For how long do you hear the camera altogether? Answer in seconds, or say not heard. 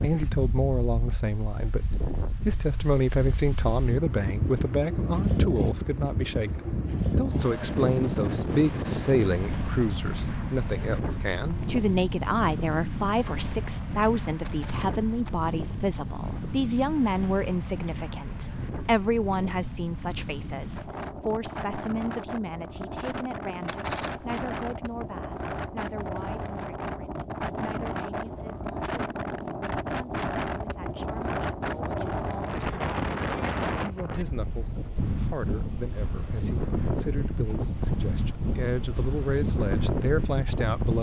2 s.